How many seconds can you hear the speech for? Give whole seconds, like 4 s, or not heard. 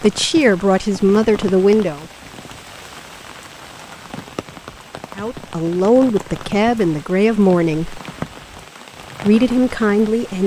6 s.